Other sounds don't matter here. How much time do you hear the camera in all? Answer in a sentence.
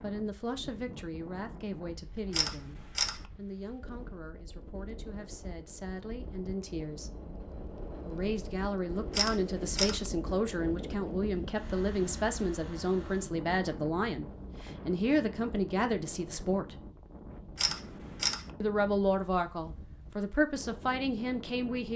The camera can be heard for 3 seconds in total.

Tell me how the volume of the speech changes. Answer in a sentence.
The loudness of the speech goes up.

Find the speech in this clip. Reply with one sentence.
You can hear the speech from 0.0 to 7.1 s, from 8.1 to 16.9 s and from 18.6 to 21.9 s.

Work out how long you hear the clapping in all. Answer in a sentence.
The clapping can't be heard in this clip.